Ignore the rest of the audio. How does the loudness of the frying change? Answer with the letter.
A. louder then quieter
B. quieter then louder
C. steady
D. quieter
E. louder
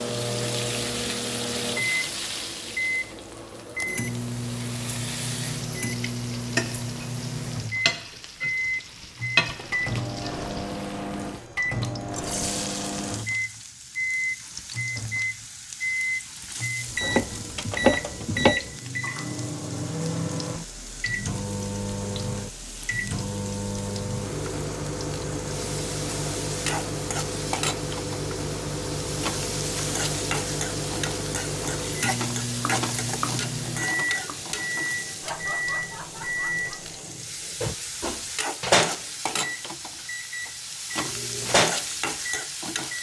B.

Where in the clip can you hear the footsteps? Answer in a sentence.
The footsteps can't be heard in this clip.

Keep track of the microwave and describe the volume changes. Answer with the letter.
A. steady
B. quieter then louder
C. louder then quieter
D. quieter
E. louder
A.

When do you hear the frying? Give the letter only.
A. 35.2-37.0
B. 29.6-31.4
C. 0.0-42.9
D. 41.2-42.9
C.